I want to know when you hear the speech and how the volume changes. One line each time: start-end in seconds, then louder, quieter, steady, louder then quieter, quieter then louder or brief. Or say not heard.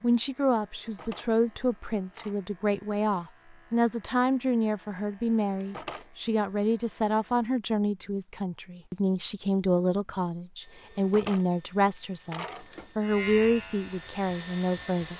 0.0-15.1 steady.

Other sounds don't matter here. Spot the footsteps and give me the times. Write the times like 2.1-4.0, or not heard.
not heard.